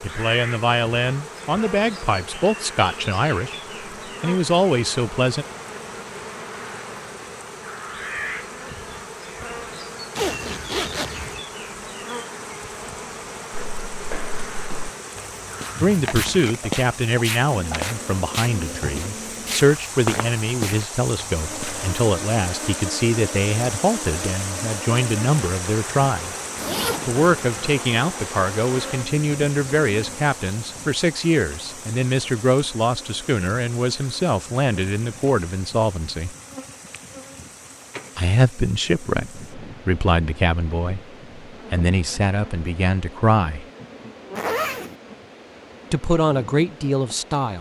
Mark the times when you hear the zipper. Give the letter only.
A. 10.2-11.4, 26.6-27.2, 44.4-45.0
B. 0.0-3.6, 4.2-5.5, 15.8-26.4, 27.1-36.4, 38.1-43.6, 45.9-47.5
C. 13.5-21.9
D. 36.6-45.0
A.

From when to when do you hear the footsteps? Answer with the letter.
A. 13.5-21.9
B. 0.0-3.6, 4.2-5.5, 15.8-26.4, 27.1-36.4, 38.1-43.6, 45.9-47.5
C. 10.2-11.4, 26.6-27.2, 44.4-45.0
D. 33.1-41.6
A.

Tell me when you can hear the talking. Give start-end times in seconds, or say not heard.
0.0-3.6, 4.2-5.5, 15.8-26.4, 27.1-36.4, 38.1-43.6, 45.9-47.5.